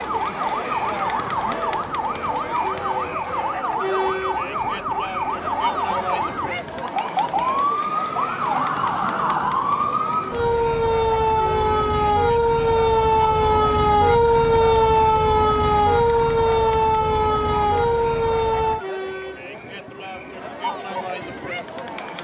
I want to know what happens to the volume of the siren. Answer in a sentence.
The volume of the siren goes up.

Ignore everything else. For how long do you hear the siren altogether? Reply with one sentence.
You can hear the siren for 19 seconds altogether.